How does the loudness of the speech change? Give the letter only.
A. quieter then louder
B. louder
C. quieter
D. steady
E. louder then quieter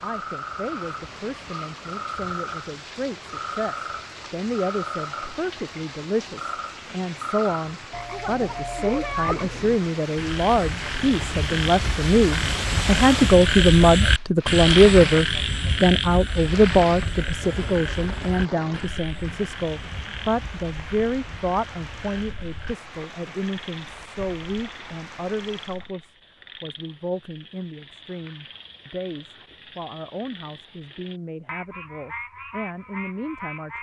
E.